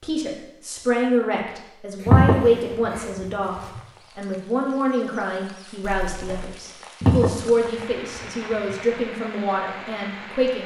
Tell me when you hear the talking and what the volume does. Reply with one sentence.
The talking can be heard from 0.0 to 10.6 s, at a steady volume.